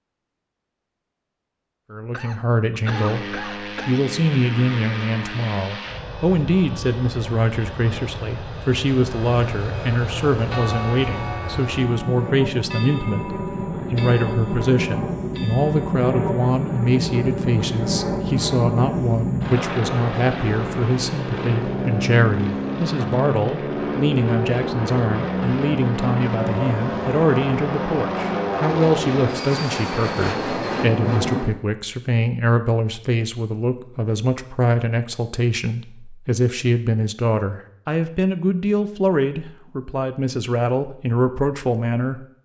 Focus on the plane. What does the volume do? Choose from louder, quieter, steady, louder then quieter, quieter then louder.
louder.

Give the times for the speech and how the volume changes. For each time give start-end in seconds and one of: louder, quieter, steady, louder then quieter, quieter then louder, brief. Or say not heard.
1.9-42.2 steady.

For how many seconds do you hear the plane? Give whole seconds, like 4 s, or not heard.
29 s.